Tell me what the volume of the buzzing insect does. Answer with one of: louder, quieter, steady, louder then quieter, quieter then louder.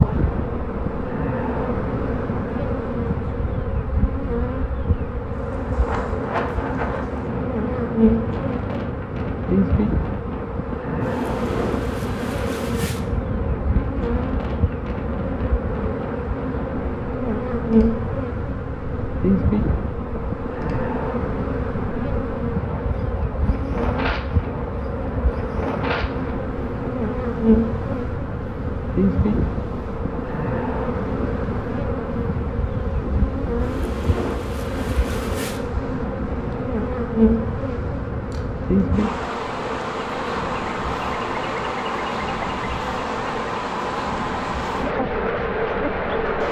steady.